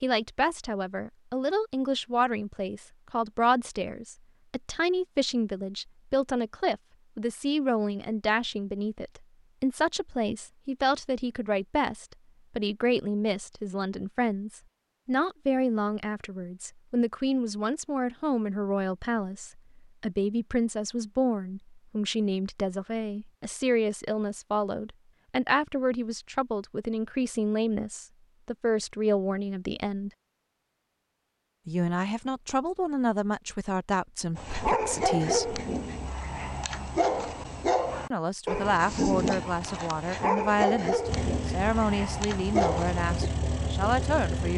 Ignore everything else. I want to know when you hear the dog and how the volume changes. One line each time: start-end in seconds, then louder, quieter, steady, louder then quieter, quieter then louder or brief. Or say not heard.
34.4-43.1 steady.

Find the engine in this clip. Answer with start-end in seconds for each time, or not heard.
41.0-44.5.